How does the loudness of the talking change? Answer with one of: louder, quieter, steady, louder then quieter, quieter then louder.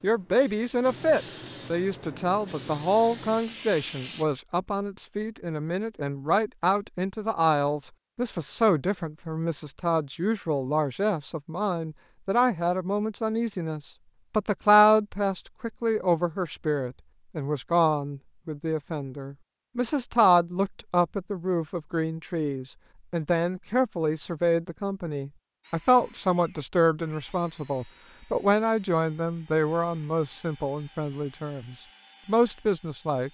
steady.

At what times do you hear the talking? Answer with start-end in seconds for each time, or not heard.
0.0-33.3.